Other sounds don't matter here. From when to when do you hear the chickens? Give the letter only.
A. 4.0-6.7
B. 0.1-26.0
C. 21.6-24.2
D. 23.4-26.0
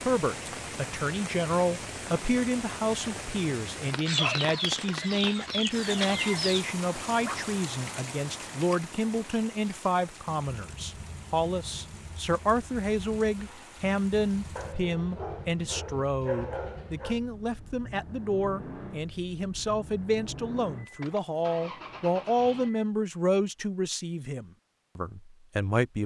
A.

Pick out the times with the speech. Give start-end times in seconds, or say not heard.
0.1-26.0.